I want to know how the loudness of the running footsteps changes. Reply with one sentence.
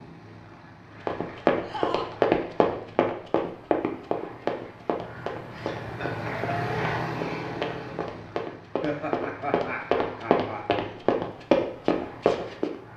The loudness of the running footsteps goes down, then up.